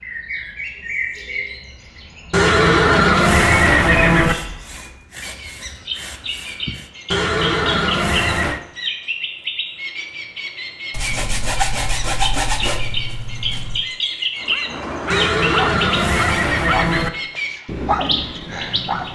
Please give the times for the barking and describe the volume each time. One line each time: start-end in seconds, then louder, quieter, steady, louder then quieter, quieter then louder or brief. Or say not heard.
14.4-19.1 quieter then louder.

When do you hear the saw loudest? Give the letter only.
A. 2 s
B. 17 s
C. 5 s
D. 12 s
D.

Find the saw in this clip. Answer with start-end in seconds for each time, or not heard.
4.2-6.9, 10.9-13.8.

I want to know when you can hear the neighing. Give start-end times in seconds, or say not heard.
2.3-4.3, 7.1-8.6, 15.1-17.1.